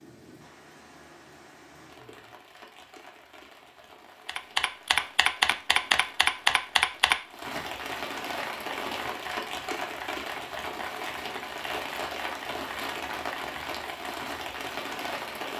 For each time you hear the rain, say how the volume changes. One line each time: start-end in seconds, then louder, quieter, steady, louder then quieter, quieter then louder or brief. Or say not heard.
0.0-15.5 louder.